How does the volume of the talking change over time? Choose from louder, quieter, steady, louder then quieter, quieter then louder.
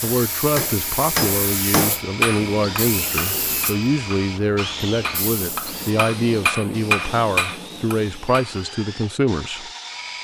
steady.